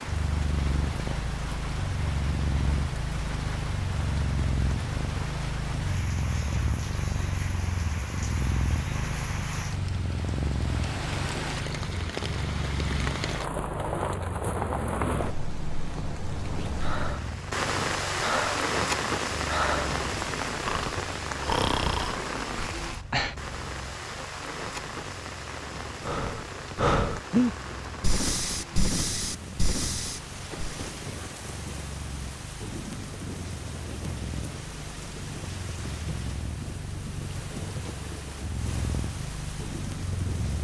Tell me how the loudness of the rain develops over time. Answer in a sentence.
The volume of the rain goes up, then down.